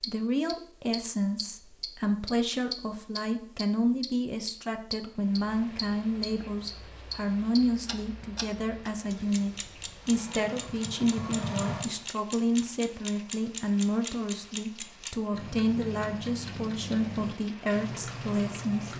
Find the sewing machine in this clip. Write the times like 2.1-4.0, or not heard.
9.9-12.0.